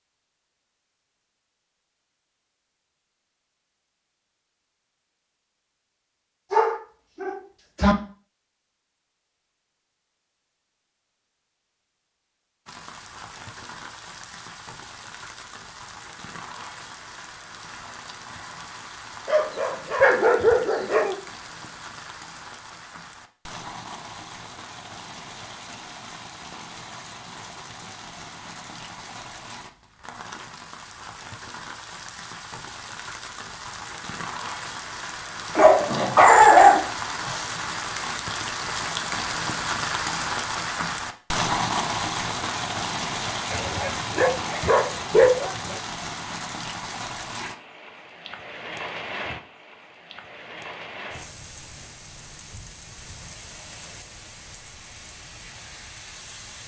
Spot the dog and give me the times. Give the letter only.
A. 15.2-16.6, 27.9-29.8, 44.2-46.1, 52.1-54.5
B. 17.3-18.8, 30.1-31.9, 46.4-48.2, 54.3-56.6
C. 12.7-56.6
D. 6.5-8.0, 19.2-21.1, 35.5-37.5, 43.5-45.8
D.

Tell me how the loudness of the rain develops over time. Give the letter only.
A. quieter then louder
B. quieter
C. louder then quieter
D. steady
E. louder
C.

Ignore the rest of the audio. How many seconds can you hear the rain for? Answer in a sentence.
The rain can be heard for 44 seconds in total.